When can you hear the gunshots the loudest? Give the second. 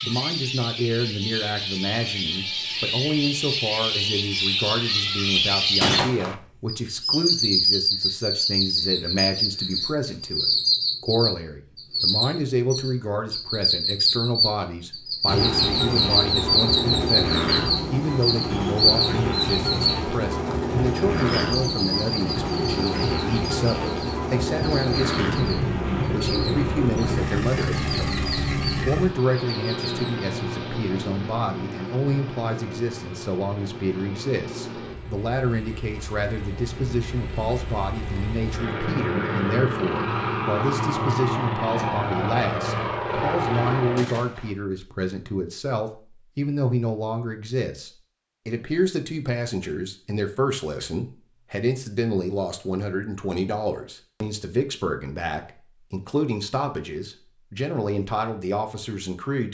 6 s.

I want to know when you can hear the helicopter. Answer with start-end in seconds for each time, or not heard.
15.2-44.0.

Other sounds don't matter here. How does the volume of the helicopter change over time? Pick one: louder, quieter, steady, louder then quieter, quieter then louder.
quieter then louder.